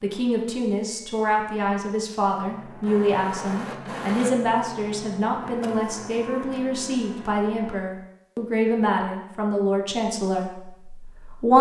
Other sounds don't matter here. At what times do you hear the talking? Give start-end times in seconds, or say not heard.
0.0-11.5.